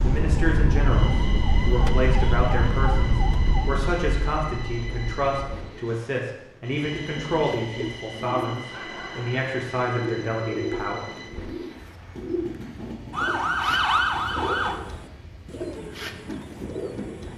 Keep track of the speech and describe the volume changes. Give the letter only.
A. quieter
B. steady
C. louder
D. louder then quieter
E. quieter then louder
B.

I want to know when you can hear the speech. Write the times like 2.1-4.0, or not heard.
0.0-11.1.